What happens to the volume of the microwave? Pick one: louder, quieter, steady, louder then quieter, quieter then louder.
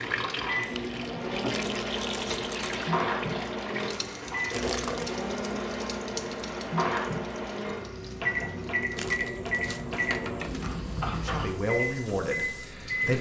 steady.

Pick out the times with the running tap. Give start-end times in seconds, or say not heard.
0.0-13.1.